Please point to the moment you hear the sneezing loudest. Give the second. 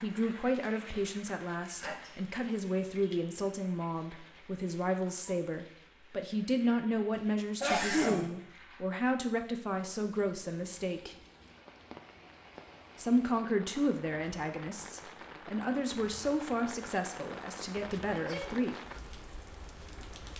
8 s.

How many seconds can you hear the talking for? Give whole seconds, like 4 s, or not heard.
17 s.